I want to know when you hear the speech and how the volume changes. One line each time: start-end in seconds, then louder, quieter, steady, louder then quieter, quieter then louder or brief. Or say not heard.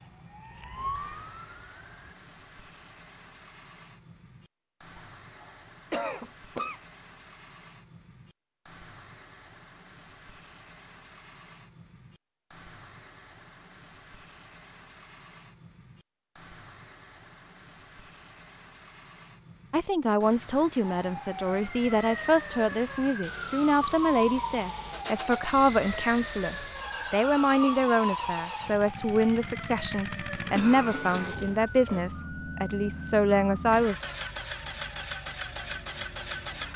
19.7-34.0 steady.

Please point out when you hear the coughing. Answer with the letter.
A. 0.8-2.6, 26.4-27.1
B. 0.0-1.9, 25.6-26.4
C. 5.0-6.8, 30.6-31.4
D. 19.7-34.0
C.